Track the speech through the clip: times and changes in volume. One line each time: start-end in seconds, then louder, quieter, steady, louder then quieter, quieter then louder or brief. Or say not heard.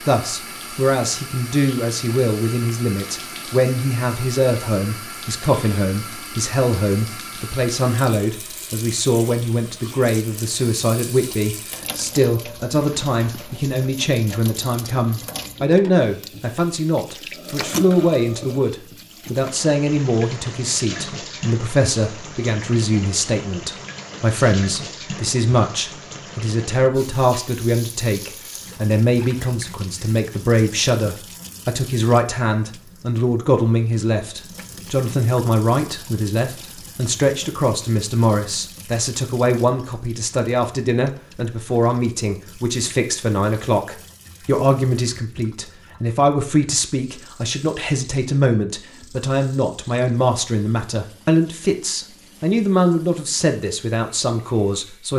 0.0-55.1 steady.